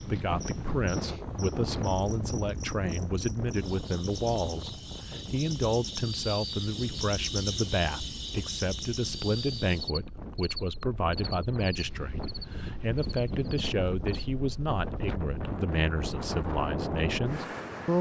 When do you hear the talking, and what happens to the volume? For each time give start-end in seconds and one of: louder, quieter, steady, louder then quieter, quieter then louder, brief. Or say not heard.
0.1-17.9 steady.